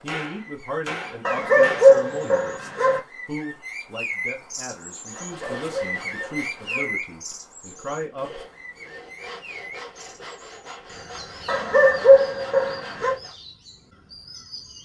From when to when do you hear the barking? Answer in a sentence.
The barking can be heard from 1.2 to 3.0 s, from 5.2 to 6.9 s and from 11.4 to 13.2 s.